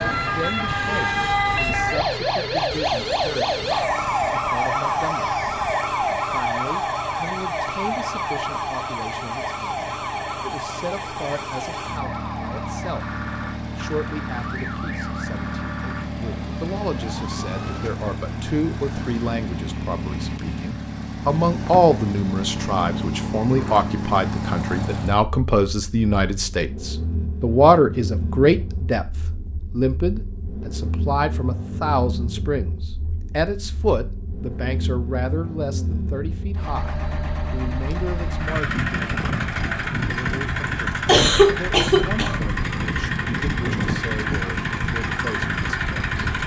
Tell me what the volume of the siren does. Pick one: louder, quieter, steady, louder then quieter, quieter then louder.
quieter.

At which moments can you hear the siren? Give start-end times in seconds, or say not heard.
0.0-17.9.